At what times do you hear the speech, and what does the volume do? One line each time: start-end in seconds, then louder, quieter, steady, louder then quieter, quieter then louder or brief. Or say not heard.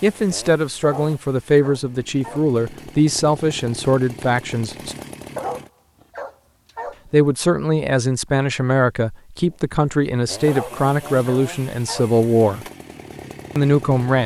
0.0-5.0 steady
7.1-12.7 steady
13.6-14.2 brief.